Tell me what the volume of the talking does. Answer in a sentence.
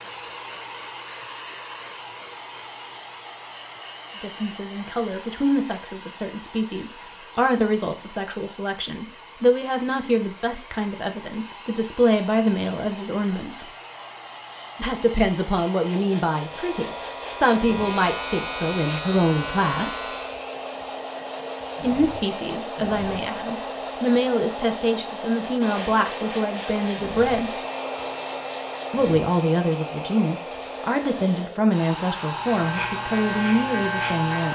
The loudness of the talking stays about the same.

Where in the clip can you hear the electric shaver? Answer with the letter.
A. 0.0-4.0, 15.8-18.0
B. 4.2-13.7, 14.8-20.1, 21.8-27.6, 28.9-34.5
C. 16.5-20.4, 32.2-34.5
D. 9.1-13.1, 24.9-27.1
C.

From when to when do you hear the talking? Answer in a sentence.
You can hear the talking from 4.2 to 13.7 s, from 14.8 to 20.1 s, from 21.8 to 27.6 s and from 28.9 to 34.5 s.